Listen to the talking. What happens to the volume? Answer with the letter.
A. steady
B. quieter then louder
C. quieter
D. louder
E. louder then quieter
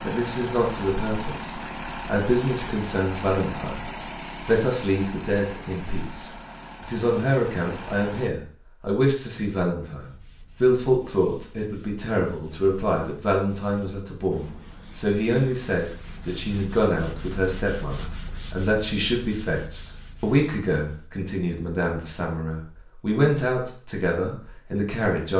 A.